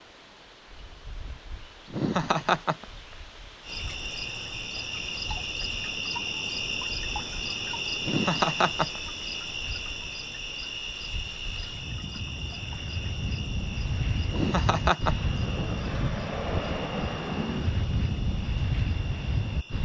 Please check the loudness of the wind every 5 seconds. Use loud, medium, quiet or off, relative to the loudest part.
quiet, quiet, medium, loud.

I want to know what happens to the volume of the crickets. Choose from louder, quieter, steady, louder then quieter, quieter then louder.
quieter.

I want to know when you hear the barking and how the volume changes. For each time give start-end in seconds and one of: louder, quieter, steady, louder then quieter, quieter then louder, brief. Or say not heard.
not heard.